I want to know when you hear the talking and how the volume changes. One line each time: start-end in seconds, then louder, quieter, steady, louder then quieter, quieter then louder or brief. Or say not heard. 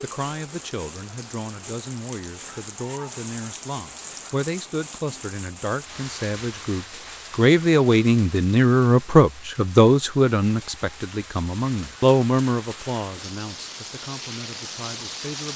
0.0-15.5 louder then quieter.